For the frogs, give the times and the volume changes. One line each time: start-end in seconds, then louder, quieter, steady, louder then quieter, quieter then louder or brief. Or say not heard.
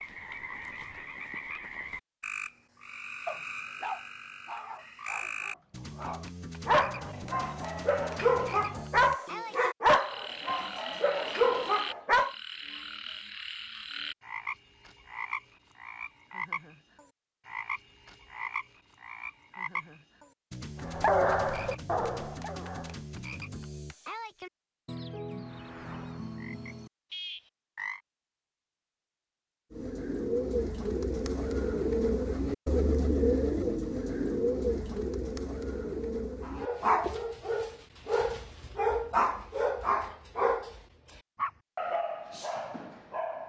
0.0-28.0 steady.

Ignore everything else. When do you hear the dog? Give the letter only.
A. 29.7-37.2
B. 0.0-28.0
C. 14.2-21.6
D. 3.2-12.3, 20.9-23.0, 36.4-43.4
D.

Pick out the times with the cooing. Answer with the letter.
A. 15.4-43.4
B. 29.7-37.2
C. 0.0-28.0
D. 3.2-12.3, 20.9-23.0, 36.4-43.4
B.